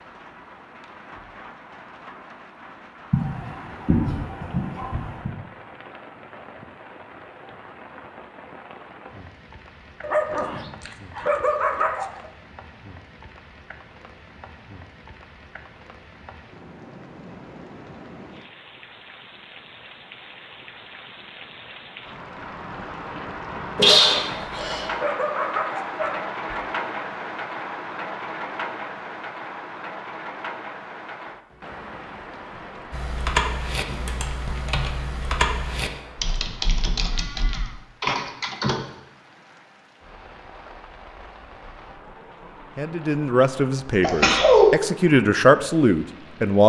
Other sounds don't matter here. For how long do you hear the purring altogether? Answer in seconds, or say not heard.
not heard.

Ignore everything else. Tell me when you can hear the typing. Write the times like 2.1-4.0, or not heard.
32.9-38.8.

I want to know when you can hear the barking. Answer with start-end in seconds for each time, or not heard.
10.0-12.3, 23.8-26.6.